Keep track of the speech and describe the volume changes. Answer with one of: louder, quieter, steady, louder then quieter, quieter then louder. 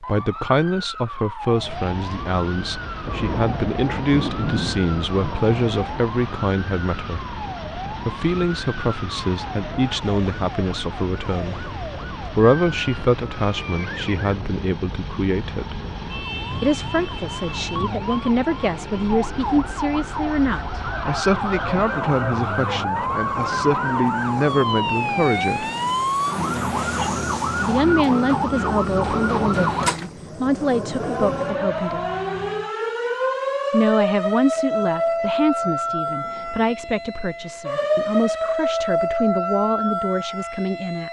steady.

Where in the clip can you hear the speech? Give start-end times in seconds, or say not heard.
0.0-15.8, 16.6-25.6, 27.6-32.0, 33.7-41.0.